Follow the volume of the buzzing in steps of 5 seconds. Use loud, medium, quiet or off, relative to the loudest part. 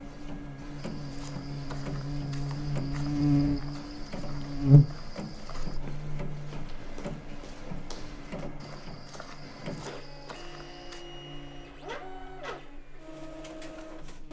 loud, quiet, quiet.